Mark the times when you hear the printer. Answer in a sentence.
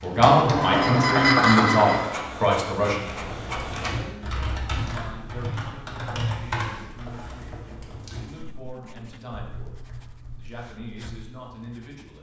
The printer can be heard from 0.0 to 4.0 s.